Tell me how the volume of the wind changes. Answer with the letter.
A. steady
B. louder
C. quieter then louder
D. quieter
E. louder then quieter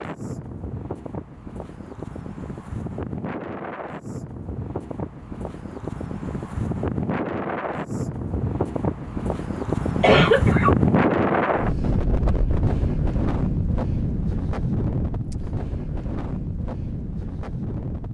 E.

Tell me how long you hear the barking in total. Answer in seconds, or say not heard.
not heard.